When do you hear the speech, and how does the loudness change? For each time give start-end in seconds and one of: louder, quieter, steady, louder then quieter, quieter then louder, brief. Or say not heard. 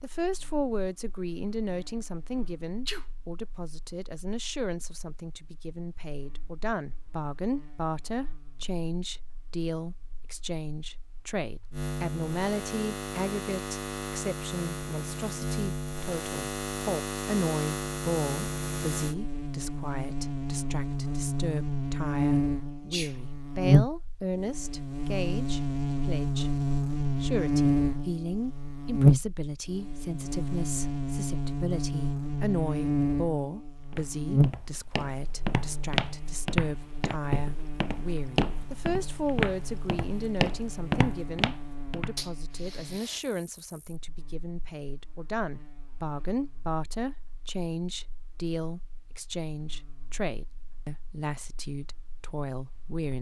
0.0-53.1 steady.